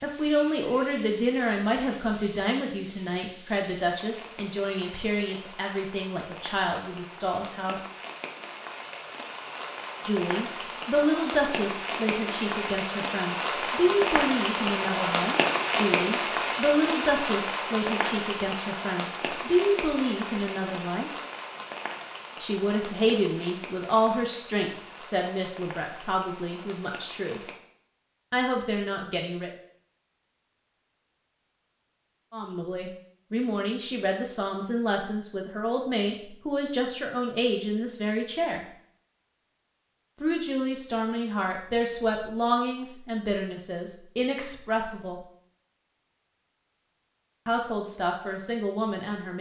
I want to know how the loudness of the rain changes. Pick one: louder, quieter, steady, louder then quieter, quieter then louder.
louder then quieter.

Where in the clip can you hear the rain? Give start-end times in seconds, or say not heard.
0.0-27.6.